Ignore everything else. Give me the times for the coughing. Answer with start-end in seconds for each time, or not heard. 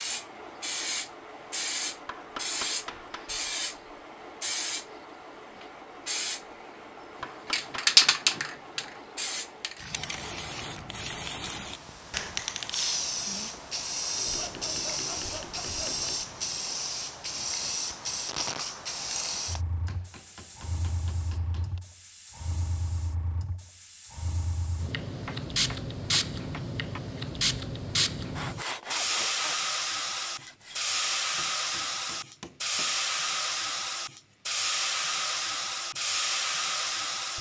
not heard.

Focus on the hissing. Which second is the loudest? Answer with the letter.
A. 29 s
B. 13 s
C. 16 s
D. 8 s
D.